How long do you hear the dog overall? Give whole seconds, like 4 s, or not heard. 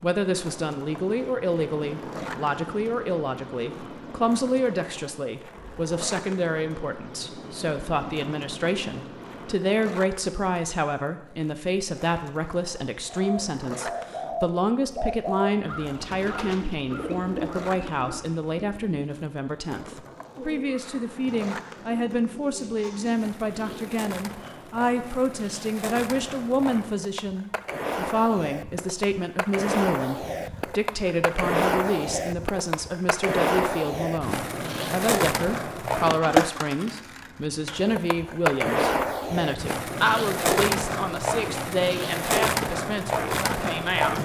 not heard.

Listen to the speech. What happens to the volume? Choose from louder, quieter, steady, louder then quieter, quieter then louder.
steady.